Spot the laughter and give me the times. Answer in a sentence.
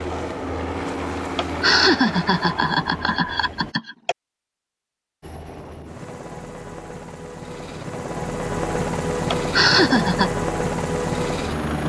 You can hear the laughter from 1.4 to 4.2 s and from 9.3 to 10.3 s.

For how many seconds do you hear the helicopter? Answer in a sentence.
The helicopter can be heard for 10 seconds in total.